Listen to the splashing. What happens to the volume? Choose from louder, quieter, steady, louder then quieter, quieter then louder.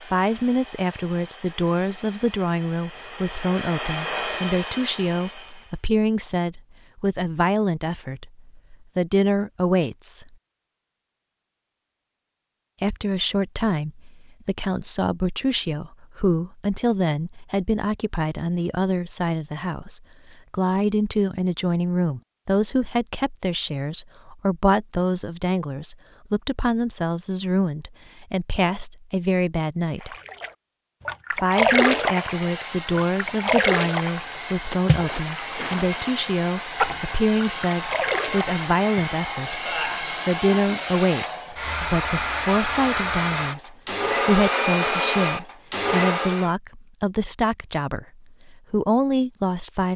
quieter then louder.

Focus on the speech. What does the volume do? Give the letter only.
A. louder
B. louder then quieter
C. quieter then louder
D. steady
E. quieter
D.